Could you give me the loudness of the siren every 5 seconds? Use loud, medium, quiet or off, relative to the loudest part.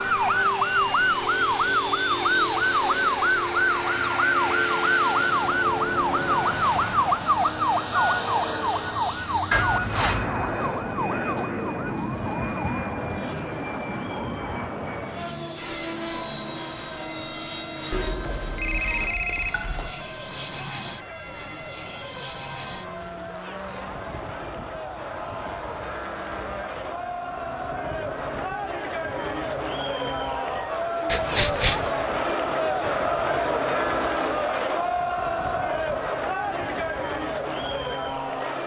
loud, loud, quiet, quiet, quiet, quiet, quiet, quiet.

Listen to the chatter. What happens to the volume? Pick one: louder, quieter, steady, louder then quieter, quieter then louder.
louder.